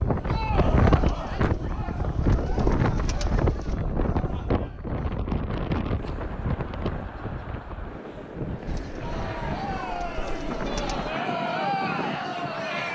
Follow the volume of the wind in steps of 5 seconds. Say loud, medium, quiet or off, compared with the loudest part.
loud, medium, medium.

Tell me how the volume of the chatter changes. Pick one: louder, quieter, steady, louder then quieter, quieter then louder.
quieter then louder.